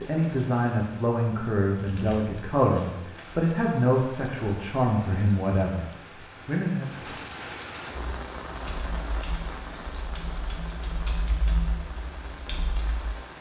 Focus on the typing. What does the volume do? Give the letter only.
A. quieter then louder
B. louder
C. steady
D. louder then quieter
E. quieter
D.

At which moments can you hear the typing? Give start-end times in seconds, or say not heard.
7.9-13.1.